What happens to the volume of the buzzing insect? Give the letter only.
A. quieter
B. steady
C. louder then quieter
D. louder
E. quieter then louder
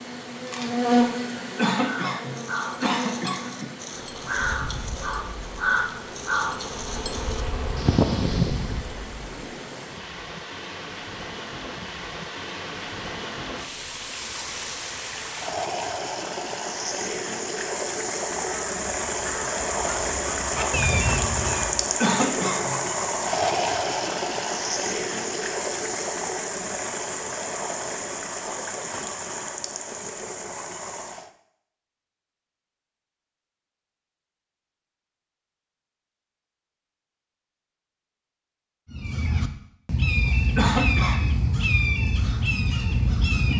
E.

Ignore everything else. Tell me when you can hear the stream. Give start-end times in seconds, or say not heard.
0.0-31.3.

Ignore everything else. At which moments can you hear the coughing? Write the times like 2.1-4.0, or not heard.
1.6-3.7, 22.0-22.9, 40.5-41.5.